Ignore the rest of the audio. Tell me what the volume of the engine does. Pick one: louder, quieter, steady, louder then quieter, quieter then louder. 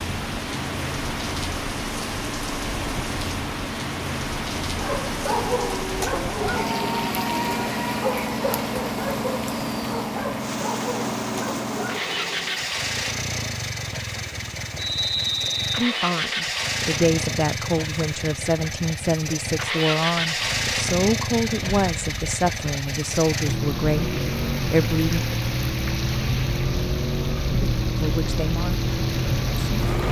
louder.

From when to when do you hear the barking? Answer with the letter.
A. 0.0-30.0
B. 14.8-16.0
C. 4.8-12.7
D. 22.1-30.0
C.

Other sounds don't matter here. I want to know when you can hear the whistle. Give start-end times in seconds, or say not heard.
14.8-16.0.